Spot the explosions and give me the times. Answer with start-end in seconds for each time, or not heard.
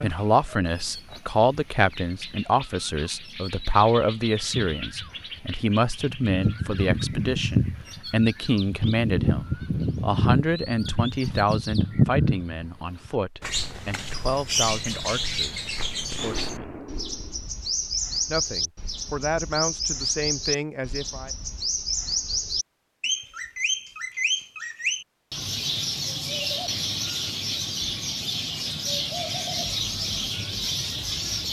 16.1-17.5.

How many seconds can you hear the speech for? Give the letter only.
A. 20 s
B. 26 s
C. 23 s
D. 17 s
A.